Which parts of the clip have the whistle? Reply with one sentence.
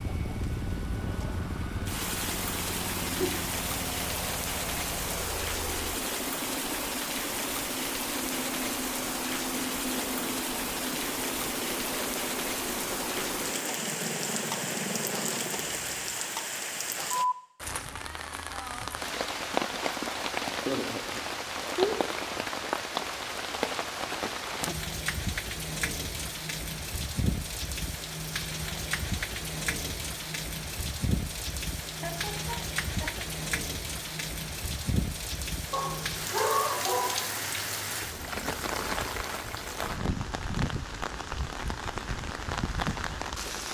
The whistle can't be heard in this clip.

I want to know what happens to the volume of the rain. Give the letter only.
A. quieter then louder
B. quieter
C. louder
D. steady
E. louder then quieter
D.